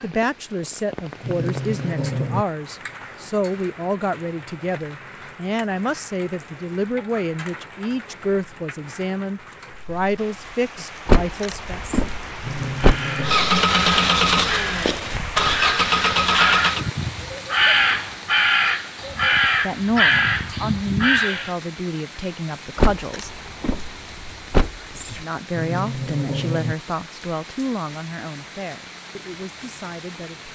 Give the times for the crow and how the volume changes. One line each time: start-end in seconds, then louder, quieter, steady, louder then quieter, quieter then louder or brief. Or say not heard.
12.8-21.6 louder.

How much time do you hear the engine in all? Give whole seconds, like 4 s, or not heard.
4 s.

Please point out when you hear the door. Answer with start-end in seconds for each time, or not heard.
11.1-13.0, 22.8-25.2.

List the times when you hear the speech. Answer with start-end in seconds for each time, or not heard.
0.0-11.8, 19.1-23.4, 25.2-30.5.